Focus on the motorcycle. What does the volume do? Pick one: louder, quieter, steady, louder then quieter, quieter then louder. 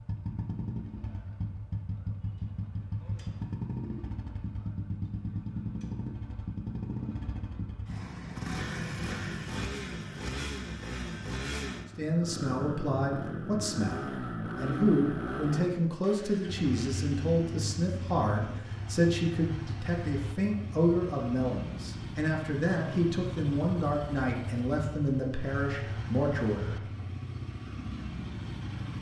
steady.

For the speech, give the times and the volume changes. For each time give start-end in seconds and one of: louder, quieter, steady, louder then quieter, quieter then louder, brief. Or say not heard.
11.9-26.9 steady.